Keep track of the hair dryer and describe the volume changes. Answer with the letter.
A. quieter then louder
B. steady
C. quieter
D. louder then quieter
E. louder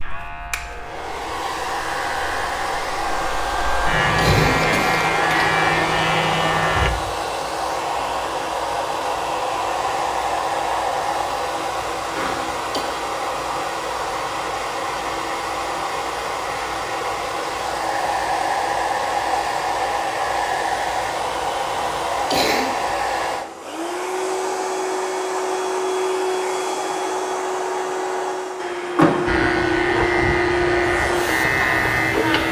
B.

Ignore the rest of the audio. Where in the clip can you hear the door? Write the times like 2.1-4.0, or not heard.
28.9-29.6.